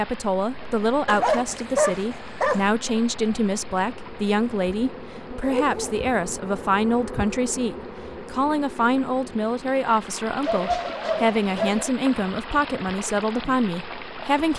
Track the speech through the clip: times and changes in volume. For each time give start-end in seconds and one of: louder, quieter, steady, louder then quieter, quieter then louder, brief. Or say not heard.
0.0-14.5 steady.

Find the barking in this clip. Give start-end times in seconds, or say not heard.
1.1-2.6, 5.4-6.0, 10.4-11.9.